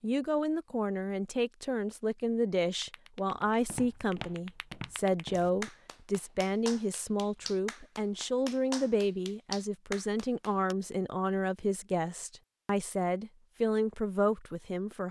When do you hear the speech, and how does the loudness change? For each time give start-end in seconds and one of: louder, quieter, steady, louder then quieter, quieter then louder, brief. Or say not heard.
0.0-15.0 steady.